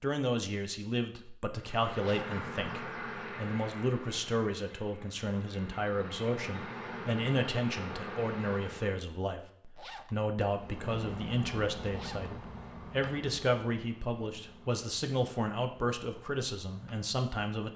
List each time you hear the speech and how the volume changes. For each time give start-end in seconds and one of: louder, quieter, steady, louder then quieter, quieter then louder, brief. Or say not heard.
0.0-17.7 steady.